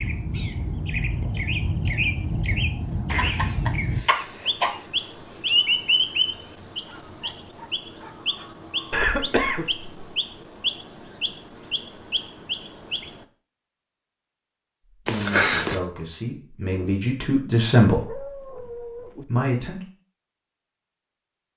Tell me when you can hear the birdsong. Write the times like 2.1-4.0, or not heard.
0.0-13.2.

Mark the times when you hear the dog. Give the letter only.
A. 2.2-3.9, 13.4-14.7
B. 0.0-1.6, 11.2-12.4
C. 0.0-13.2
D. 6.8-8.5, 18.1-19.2
D.